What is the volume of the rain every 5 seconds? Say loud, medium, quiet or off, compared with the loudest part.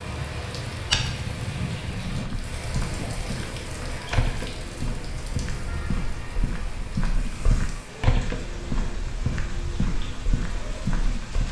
loud, medium, medium.